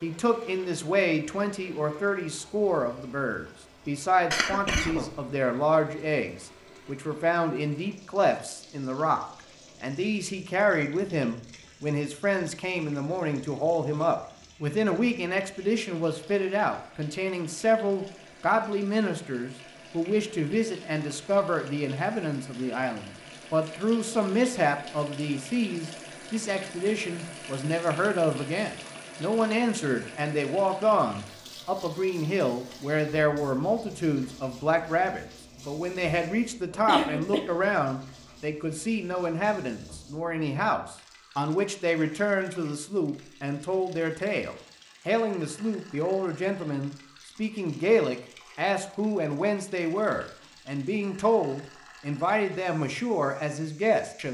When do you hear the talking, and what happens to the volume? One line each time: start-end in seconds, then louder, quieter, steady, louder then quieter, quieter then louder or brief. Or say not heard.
0.0-54.3 steady.